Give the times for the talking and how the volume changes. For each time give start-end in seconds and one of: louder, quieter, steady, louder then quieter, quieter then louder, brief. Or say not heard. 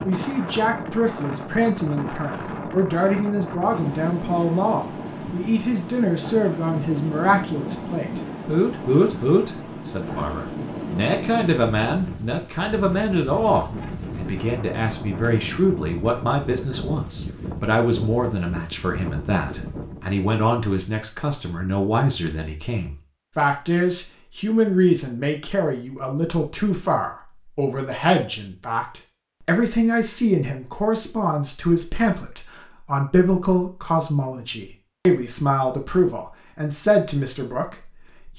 0.0-38.3 steady.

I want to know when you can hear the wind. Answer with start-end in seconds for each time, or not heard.
0.0-20.1.